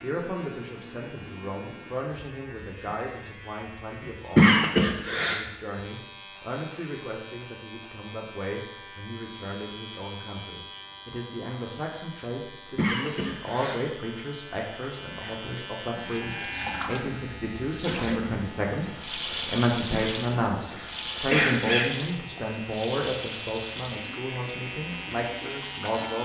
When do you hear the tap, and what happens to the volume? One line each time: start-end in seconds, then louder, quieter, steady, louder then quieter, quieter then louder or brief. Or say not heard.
15.9-26.2 quieter.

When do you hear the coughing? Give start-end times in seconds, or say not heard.
4.3-5.4, 12.8-13.8, 19.9-21.9.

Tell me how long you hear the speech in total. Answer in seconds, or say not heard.
26 s.